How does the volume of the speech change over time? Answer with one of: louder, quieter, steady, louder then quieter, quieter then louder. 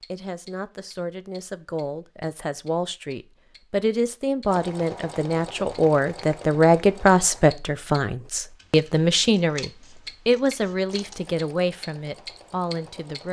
louder then quieter.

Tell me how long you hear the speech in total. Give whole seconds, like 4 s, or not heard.
13 s.